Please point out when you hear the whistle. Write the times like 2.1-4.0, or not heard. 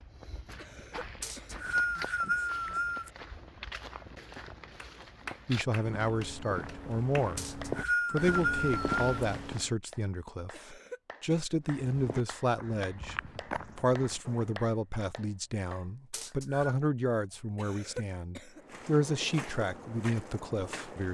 1.2-3.1, 7.3-9.2, 16.1-16.8.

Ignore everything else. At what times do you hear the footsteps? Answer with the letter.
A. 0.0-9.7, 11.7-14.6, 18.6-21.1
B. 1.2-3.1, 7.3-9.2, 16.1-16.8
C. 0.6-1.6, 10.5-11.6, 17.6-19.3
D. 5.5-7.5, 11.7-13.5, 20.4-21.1
A.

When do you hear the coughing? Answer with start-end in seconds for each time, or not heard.
0.6-1.6, 10.5-11.6, 17.6-19.3.